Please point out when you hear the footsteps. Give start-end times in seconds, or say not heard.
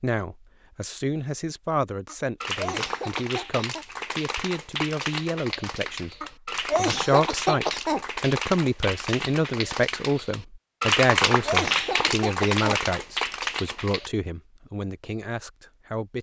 not heard.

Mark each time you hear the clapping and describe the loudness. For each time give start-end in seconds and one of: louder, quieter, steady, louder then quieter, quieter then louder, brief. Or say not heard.
2.4-14.1 louder.